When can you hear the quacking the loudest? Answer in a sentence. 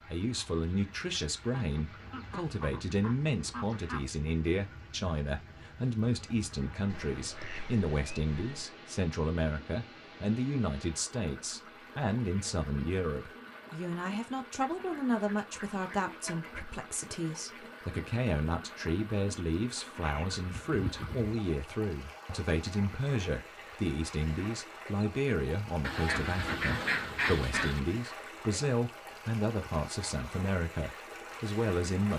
The volume of the quacking peaks at 27 seconds.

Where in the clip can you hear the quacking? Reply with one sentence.
The quacking can be heard from 1.6 to 4.1 s, from 6.9 to 8.7 s, from 14.6 to 16.6 s, from 20.0 to 21.2 s and from 25.8 to 27.8 s.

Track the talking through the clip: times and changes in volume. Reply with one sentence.
The talking can be heard from 0.0 to 32.1 s, at a steady volume.